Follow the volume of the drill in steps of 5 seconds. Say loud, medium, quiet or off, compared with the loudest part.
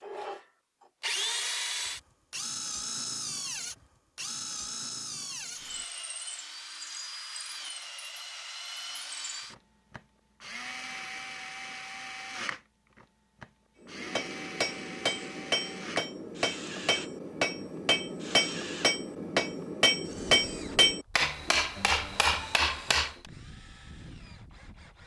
loud, medium, medium, medium, quiet.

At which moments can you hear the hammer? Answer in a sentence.
The hammer can be heard from 13.8 to 23.1 s.